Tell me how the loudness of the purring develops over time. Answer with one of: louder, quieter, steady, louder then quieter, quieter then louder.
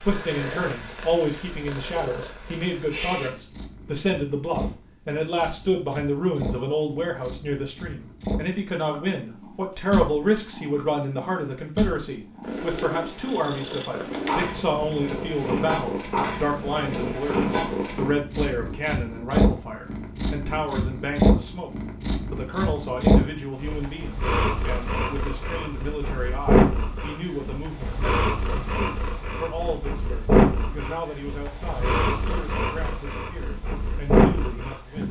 louder.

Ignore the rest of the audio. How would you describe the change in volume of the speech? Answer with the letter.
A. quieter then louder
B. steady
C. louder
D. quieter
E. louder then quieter
D.